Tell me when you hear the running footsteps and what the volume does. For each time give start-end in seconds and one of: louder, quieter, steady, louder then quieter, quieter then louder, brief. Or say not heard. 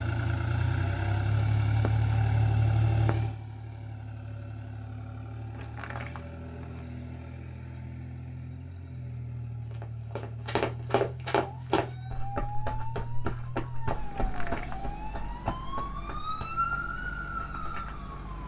9.7-18.1 quieter.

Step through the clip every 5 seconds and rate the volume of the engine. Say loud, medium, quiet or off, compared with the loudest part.
loud, medium, medium, quiet.